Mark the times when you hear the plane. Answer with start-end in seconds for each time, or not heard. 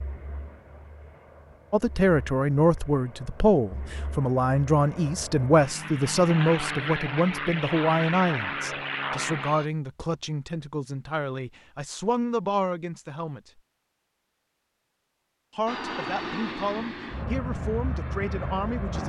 0.0-9.7, 15.7-19.0.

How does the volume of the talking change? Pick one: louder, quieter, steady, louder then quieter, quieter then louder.
quieter.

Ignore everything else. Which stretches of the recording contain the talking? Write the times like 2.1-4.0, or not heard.
1.7-13.6, 15.6-19.0.